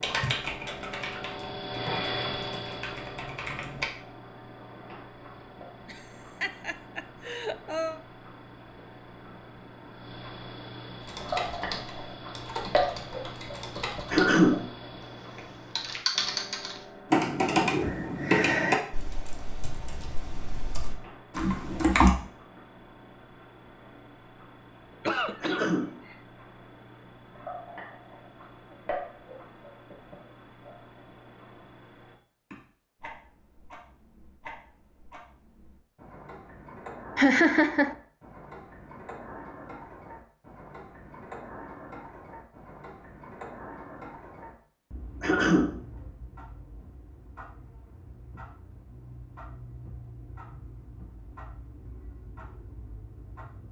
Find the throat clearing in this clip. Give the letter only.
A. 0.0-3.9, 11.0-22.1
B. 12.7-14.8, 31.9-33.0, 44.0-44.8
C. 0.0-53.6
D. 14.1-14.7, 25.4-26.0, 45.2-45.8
D.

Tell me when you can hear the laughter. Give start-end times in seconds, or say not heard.
5.8-8.0, 25.1-26.1, 37.1-38.0.